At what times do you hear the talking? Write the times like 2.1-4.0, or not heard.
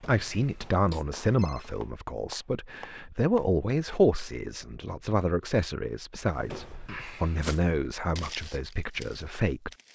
0.1-9.7.